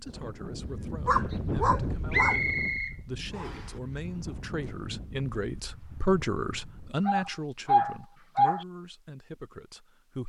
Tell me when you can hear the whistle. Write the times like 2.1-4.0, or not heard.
2.1-3.7.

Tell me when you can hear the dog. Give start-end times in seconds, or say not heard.
0.6-2.4, 7.0-8.7.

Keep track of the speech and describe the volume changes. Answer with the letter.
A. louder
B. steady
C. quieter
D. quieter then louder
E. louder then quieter
E.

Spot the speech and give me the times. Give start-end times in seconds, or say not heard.
0.0-10.2.